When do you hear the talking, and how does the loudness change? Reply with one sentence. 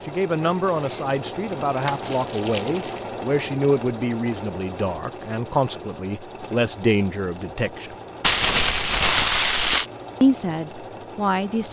The talking can be heard from 0.1 to 8.0 s, at a steady volume; and briefly from 10.2 to 11.6 s.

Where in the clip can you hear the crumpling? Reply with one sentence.
The crumpling can be heard from 0.7 to 3.0 s and from 8.2 to 9.8 s.